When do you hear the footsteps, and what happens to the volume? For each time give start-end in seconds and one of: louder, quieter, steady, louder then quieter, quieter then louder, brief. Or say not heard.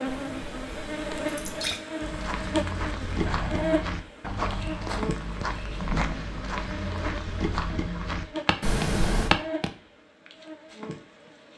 2.0-9.7 steady.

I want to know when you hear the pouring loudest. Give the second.
9 s.